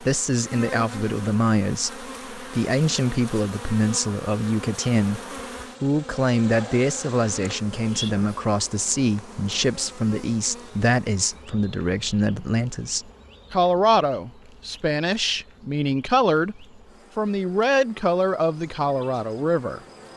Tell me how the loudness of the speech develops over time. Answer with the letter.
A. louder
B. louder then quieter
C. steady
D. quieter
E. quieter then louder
C.